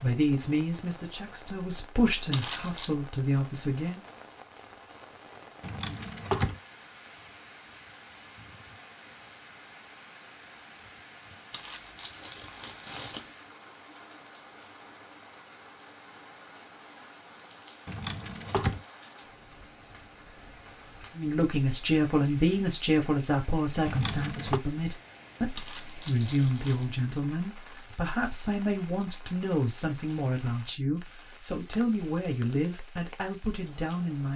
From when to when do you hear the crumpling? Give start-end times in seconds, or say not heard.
2.3-3.0, 11.5-13.3, 25.6-26.9.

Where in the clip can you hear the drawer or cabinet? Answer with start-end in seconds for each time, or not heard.
5.6-6.6, 17.9-18.8, 23.9-24.6.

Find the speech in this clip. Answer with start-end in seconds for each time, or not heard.
0.0-4.0, 21.1-34.3.